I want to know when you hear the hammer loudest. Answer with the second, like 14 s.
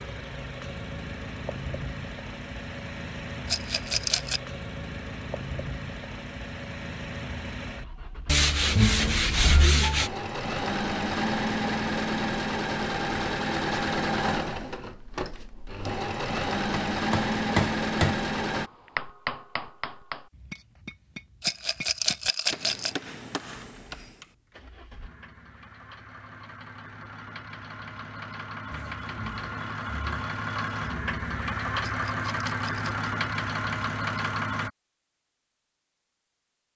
18 s.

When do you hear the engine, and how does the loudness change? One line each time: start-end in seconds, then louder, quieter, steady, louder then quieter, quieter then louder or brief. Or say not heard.
0.0-18.7 louder
23.6-34.7 louder.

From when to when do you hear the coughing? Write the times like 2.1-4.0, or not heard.
not heard.